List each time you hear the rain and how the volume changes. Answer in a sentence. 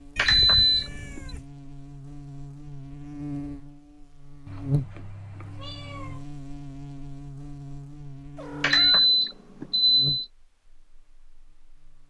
You can't hear the rain here.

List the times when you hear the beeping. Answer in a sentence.
The beeping can be heard from 0.1 to 1.2 s and from 8.6 to 10.2 s.